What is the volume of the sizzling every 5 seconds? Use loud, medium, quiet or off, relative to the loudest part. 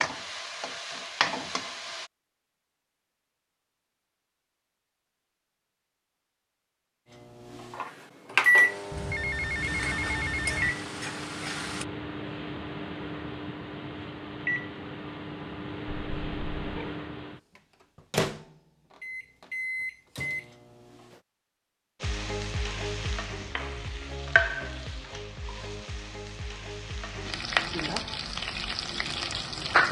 loud, medium, medium, off, loud, loud.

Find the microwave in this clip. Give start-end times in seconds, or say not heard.
7.1-21.2.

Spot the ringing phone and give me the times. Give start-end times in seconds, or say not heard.
8.9-10.7, 15.8-16.9.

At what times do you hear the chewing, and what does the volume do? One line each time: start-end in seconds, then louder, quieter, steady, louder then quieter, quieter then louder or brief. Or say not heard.
not heard.